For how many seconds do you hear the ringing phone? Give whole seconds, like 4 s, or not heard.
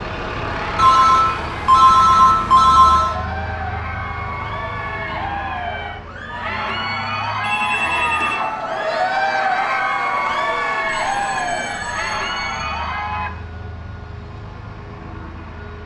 5 s.